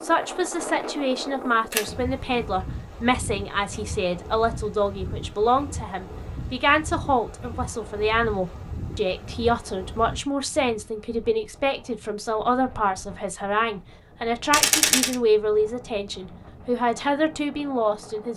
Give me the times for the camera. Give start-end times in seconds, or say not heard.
1.7-2.5, 14.5-15.2.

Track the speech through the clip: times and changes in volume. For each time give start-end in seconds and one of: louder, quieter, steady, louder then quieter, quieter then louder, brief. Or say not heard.
0.0-18.3 steady.